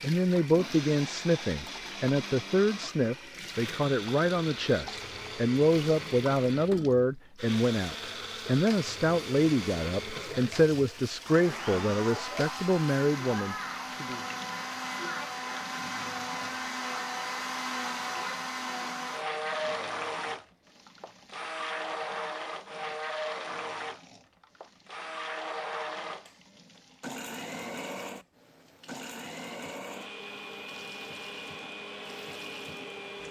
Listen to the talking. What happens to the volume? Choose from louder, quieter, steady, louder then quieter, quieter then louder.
steady.